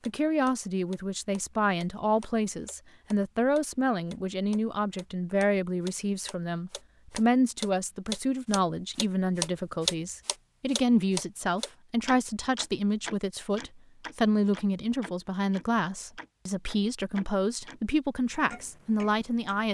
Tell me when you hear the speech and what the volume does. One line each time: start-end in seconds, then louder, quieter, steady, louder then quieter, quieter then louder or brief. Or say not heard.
0.1-19.6 steady.